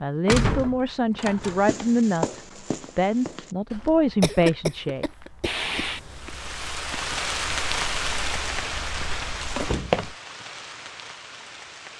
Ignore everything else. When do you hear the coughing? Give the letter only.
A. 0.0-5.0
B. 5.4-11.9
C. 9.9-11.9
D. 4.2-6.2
D.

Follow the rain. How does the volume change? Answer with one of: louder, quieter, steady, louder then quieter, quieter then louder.
louder then quieter.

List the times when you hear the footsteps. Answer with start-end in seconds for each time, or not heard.
1.4-10.2.